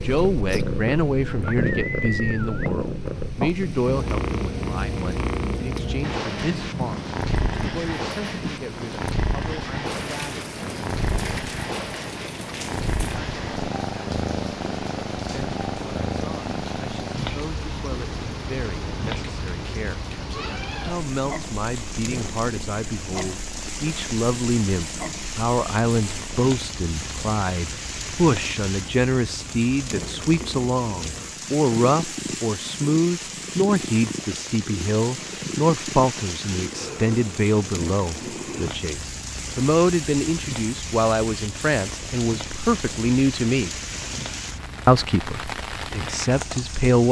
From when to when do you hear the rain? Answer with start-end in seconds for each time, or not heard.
0.0-47.0.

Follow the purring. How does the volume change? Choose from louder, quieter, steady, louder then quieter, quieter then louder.
quieter.